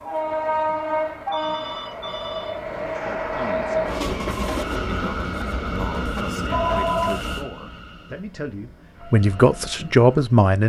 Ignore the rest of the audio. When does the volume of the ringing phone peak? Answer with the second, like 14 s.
7 s.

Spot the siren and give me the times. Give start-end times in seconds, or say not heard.
not heard.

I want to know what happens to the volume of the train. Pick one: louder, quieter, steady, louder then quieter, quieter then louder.
quieter.